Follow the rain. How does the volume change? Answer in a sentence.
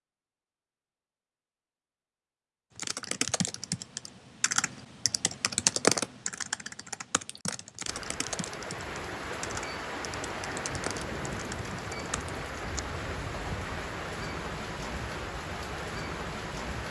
The volume of the rain stays about the same.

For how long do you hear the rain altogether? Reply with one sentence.
The rain can be heard for 9 seconds in total.